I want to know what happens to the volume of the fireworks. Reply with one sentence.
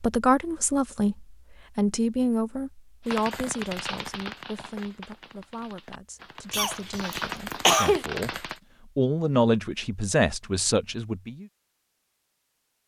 The volume of the fireworks goes down, then up.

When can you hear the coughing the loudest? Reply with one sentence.
The loudest moment of the coughing is at 8 seconds.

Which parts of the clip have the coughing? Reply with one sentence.
You can hear the coughing from 6.5 to 8.1 s.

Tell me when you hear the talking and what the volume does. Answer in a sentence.
The talking can be heard from 0.0 to 11.4 s, getting quieter then louder.